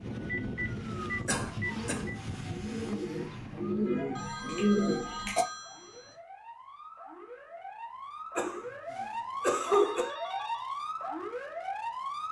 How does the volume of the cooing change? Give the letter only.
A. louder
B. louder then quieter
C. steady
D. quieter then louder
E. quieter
A.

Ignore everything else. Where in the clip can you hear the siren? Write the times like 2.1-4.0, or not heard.
0.0-12.2.